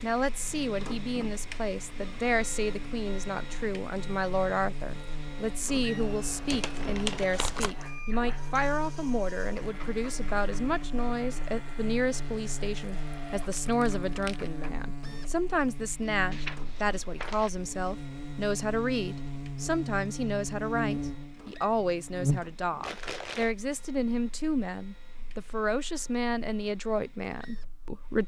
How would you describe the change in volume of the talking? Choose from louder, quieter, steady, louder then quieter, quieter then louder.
steady.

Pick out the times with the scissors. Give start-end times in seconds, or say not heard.
16.3-17.5.